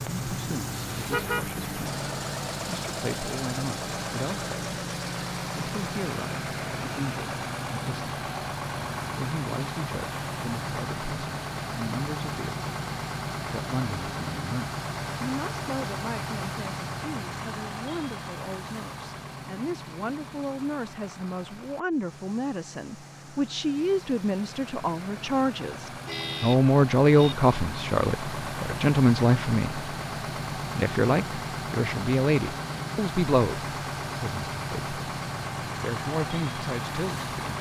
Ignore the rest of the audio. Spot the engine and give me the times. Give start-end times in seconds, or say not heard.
0.0-37.5.